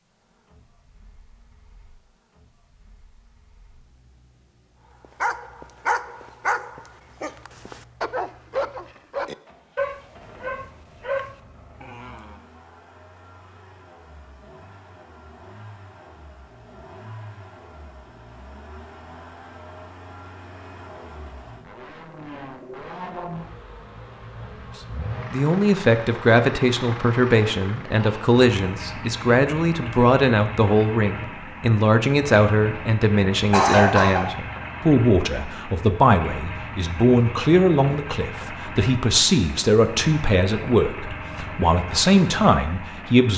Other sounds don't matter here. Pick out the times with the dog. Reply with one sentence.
The dog can be heard from 5.2 to 12.4 s.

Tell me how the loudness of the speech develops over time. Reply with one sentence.
The loudness of the speech stays about the same.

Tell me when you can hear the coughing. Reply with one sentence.
The coughing can be heard from 33.5 to 34.2 s.